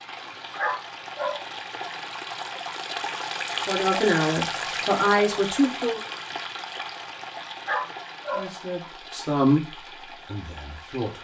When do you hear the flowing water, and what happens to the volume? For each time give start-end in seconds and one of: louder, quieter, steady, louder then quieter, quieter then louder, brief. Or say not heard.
0.0-11.1 louder then quieter.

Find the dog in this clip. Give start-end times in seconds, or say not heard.
0.6-1.4, 7.7-8.4.